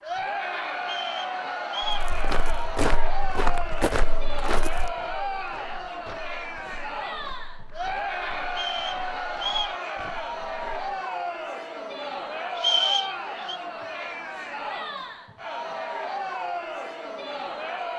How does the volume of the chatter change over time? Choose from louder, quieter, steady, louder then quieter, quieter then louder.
steady.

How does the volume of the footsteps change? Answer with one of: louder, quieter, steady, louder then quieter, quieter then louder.
quieter.